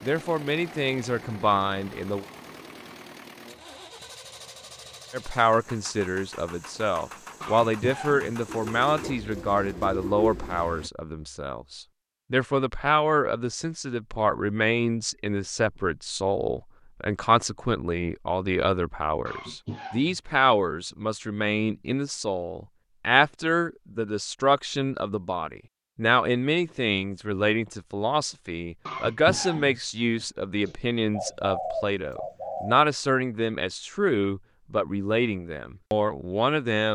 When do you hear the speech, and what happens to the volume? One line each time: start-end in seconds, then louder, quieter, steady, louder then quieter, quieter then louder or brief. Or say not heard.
0.0-2.2 brief
5.1-36.9 steady.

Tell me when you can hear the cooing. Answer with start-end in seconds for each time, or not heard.
8.4-10.7, 31.1-32.8.